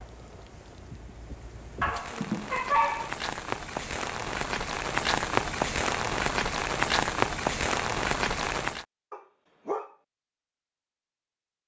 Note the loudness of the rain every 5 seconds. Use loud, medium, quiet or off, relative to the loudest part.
medium, loud, off.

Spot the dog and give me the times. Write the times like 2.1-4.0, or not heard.
1.8-3.1, 9.1-9.9.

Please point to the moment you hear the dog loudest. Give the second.
3 s.